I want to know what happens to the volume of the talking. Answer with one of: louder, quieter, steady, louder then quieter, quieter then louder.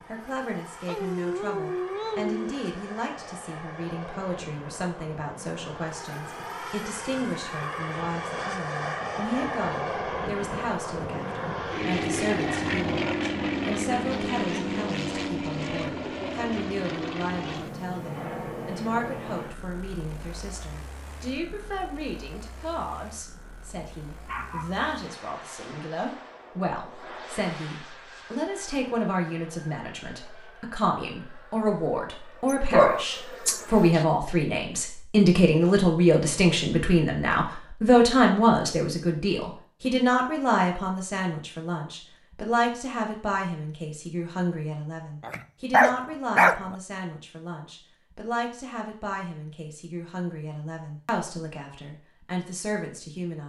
louder then quieter.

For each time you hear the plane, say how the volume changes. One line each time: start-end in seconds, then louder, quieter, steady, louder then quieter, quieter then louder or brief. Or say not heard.
0.0-34.0 louder then quieter.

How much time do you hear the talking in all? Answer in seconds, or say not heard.
53 s.